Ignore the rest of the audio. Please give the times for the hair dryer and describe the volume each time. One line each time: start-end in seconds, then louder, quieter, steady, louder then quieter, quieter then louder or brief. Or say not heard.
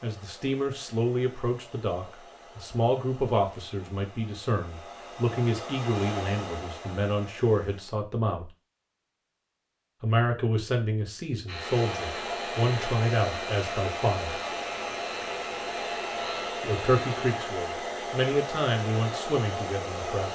0.0-8.0 louder
11.5-20.3 steady.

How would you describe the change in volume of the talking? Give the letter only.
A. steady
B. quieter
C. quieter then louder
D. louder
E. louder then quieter
A.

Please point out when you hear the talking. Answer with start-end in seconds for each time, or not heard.
0.0-8.4, 10.0-14.4, 16.6-20.3.